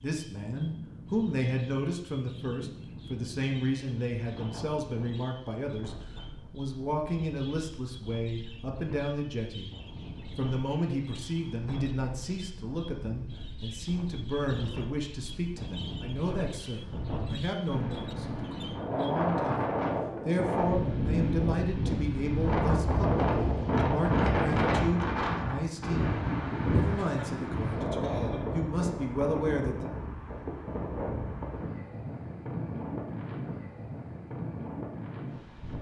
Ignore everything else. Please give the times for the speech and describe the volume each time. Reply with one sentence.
You can hear the speech from 0.0 to 29.9 s, at a steady volume.